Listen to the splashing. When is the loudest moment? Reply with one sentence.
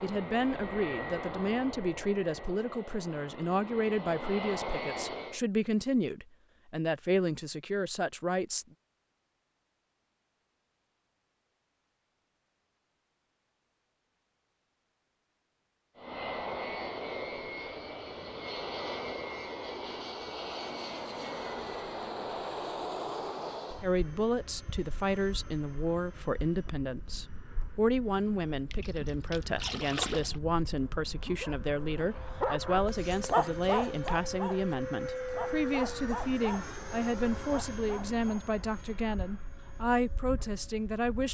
The volume of the splashing peaks at 30 seconds.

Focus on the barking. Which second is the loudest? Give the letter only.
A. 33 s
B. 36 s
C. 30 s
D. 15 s
A.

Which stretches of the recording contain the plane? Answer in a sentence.
You can hear the plane from 0.0 to 5.4 s and from 15.9 to 41.2 s.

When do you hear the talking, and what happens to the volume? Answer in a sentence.
You can hear the talking from 0.0 to 8.7 s, at a steady volume; and from 23.8 to 41.2 s, at a steady volume.